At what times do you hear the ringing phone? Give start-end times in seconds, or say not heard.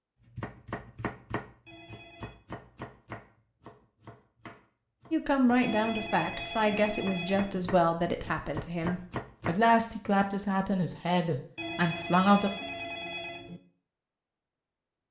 1.6-2.4, 5.6-7.7, 11.6-13.6.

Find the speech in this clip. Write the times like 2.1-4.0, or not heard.
5.1-12.5.